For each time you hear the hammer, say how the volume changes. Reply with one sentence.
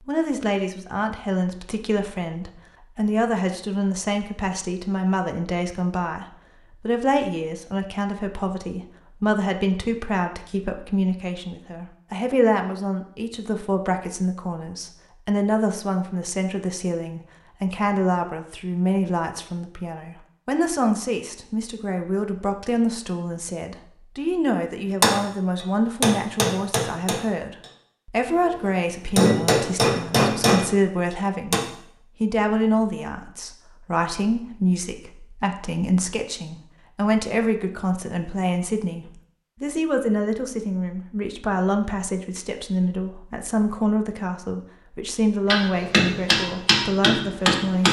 You can hear the hammer from 25.0 to 31.6 s, getting quieter then louder; and briefly from 45.5 to 47.8 s.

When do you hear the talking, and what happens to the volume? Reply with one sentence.
The talking can be heard from 0.1 to 31.6 s, at a steady volume; and from 32.2 to 47.8 s, at a steady volume.